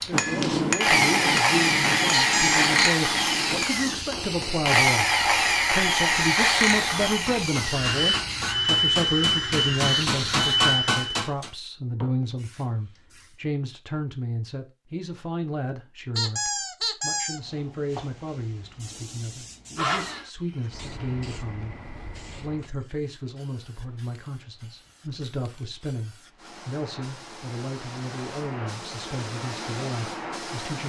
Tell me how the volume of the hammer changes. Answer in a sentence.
The loudness of the hammer goes down, then up.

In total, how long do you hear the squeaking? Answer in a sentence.
You can hear the squeaking for 2 seconds altogether.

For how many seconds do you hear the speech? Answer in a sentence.
You can hear the speech for 30 seconds altogether.